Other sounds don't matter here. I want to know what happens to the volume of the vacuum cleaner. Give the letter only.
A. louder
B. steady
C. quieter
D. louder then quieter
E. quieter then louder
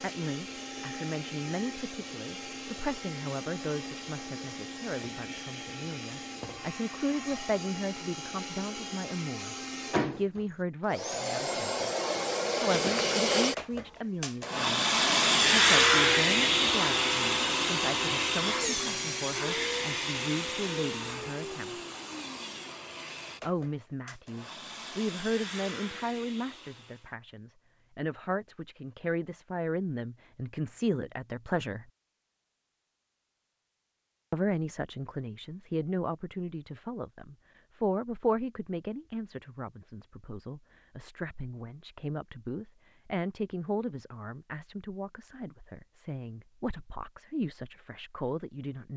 D.